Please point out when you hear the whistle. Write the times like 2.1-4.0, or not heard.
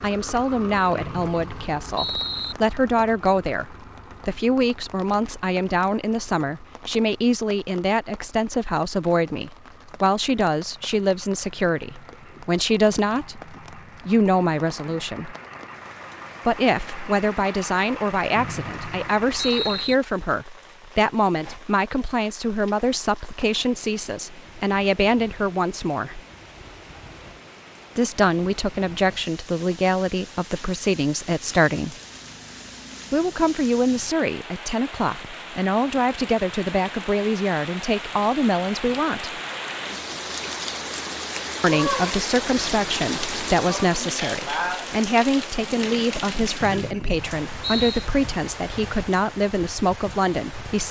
0.9-2.5, 18.4-19.9, 46.6-48.1.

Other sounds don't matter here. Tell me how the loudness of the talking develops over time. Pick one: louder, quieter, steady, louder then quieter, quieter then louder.
steady.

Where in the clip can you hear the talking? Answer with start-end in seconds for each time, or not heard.
0.0-15.3, 16.4-26.2, 27.9-31.9, 33.1-39.4, 41.6-50.8.